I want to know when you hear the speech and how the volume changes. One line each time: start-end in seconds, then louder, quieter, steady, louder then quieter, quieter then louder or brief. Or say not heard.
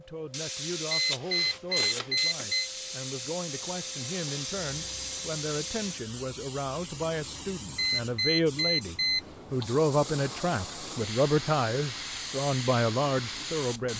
0.0-13.9 louder.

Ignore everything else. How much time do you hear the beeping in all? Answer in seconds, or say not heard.
3 s.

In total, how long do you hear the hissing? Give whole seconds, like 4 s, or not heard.
14 s.